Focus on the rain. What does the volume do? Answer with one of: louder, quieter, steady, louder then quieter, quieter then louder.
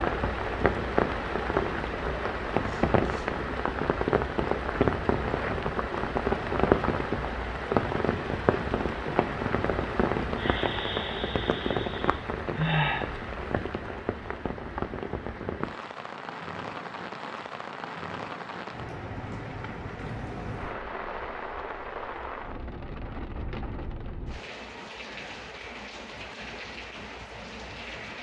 quieter.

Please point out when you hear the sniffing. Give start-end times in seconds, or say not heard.
2.6-3.3, 10.3-13.1, 20.0-20.8.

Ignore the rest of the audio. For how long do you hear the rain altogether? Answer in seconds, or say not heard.
28 s.